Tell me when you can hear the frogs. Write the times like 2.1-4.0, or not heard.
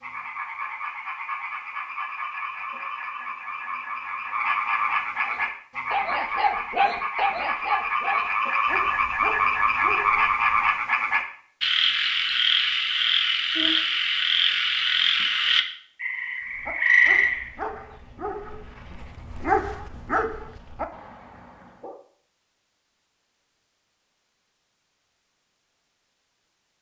0.0-17.5.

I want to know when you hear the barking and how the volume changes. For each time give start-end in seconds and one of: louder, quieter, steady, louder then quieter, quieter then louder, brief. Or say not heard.
5.2-10.7 quieter
16.5-22.0 louder then quieter.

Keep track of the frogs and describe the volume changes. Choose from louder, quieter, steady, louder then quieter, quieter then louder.
louder.